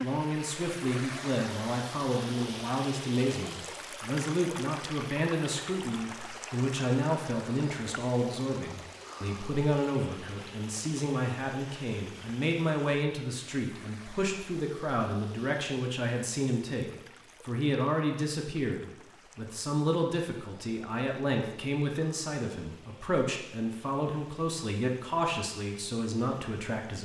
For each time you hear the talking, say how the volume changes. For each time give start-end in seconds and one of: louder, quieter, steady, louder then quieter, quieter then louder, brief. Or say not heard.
0.0-27.0 steady.